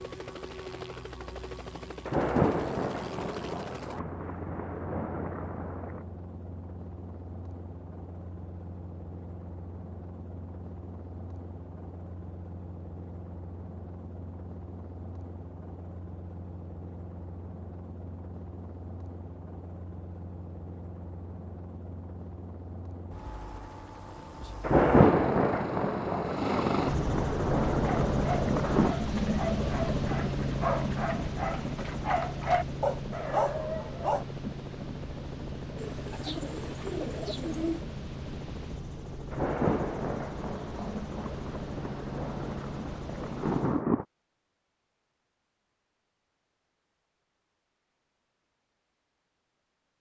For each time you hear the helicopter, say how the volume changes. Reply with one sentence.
The helicopter can be heard from 0.0 to 43.9 s, getting louder then quieter.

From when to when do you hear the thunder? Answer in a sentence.
The thunder can be heard from 2.0 to 6.0 s, from 24.6 to 28.9 s and from 39.3 to 44.0 s.